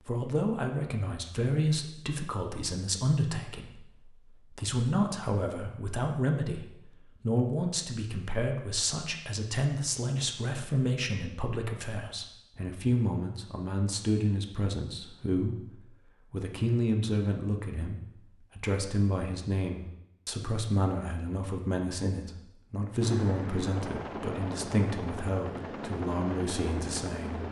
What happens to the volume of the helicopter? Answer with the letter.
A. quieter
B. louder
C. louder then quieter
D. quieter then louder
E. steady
E.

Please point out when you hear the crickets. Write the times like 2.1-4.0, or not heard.
not heard.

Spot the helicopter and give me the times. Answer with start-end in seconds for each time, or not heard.
23.0-27.4.